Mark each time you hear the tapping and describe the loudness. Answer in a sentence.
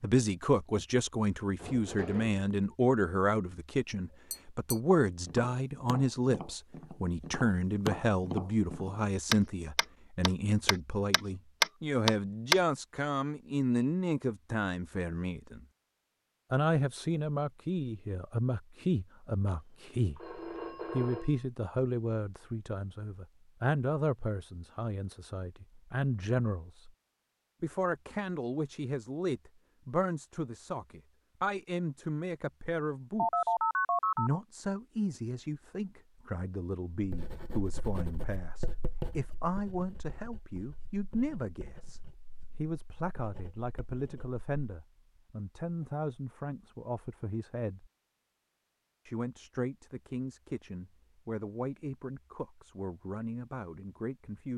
The tapping can be heard from 4.3 to 12.6 s, getting louder.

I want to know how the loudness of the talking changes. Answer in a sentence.
The volume of the talking goes down.